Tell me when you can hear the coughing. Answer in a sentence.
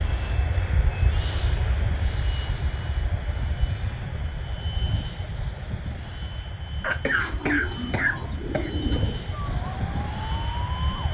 You can hear the coughing from 6.8 to 8.8 s.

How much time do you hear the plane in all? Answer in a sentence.
The plane can be heard for 11 seconds in total.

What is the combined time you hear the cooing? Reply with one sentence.
The cooing can be heard for 2 seconds in total.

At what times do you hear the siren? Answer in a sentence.
You can hear the siren from 9.3 to 11.1 s.